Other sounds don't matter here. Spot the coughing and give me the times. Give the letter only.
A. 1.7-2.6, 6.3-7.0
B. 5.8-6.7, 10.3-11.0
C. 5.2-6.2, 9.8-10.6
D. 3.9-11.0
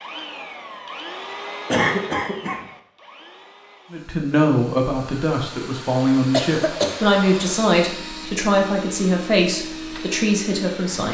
A.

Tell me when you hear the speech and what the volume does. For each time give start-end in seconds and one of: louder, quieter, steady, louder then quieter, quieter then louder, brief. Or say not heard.
3.9-11.0 steady.